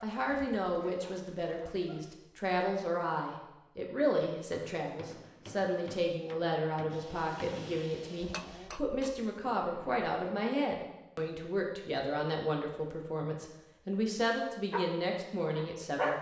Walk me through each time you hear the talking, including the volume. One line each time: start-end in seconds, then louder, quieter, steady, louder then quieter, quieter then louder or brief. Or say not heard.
0.0-16.1 steady.